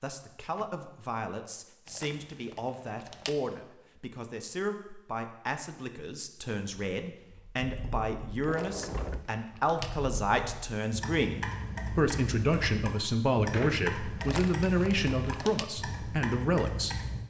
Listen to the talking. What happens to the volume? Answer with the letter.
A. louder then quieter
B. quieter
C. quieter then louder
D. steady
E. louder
E.